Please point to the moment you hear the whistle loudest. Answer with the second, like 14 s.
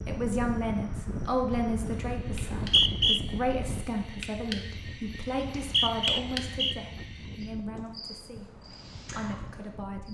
3 s.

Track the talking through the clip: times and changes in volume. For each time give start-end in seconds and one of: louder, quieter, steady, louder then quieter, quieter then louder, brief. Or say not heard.
0.1-10.0 quieter.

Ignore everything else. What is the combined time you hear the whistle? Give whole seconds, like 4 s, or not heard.
2 s.